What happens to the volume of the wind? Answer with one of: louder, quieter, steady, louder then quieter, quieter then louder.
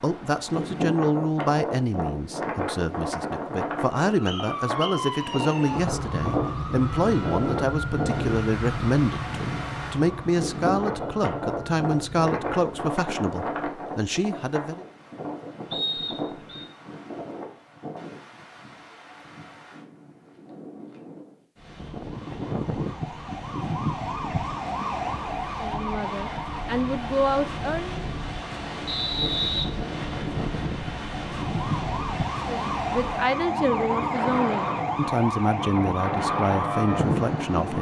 quieter then louder.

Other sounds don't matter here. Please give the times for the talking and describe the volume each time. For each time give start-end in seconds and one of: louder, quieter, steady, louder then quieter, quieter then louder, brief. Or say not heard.
0.0-14.8 steady
25.6-28.0 brief
32.5-37.7 steady.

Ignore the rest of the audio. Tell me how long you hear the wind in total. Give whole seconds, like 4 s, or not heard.
38 s.